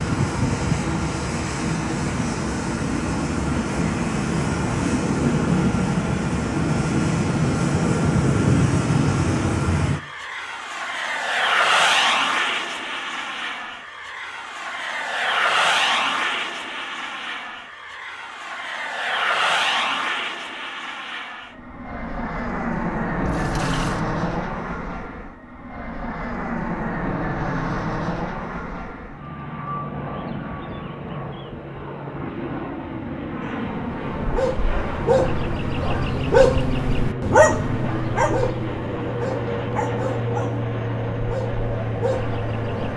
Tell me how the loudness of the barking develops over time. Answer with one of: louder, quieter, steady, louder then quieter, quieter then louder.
louder then quieter.